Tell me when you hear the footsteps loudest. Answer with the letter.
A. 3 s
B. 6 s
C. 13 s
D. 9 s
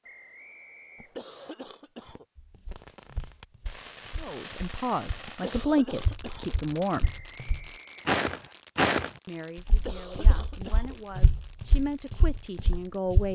D.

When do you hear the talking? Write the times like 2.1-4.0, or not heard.
4.2-7.1, 9.2-13.2.